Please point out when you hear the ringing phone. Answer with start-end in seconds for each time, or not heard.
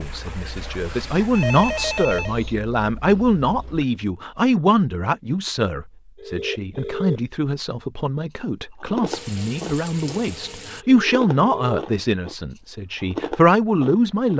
1.3-2.4, 6.2-7.2, 10.8-11.8.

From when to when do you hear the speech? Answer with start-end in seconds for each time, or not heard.
0.0-14.3.